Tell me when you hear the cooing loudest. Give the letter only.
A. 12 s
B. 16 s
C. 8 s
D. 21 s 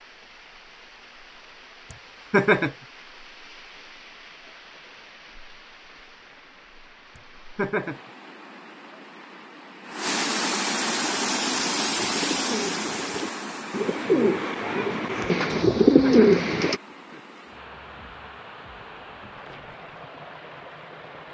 B.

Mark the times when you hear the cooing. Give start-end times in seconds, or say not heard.
10.9-16.8.